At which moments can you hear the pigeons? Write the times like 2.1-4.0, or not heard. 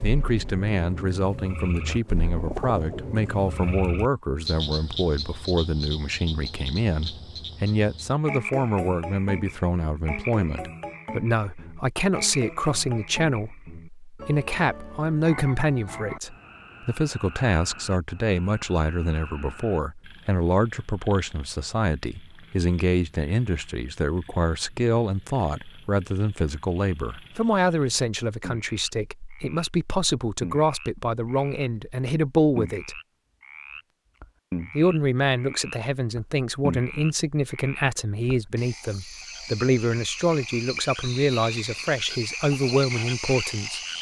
1.9-3.2.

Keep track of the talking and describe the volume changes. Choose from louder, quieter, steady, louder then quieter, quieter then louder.
steady.